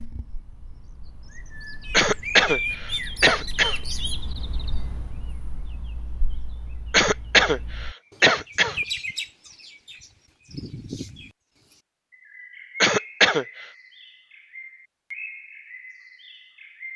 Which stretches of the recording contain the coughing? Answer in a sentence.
The coughing can be heard from 1.9 to 3.8 s, from 6.9 to 8.8 s and from 12.8 to 13.4 s.